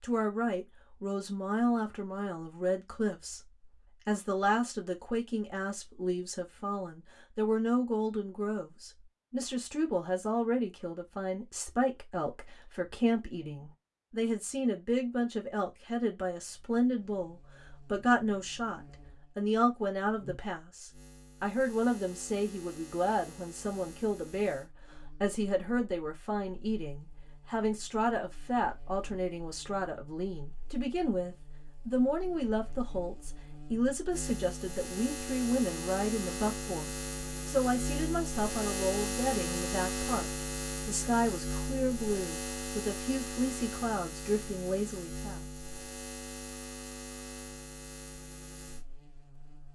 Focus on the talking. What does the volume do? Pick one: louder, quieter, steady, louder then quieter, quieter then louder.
steady.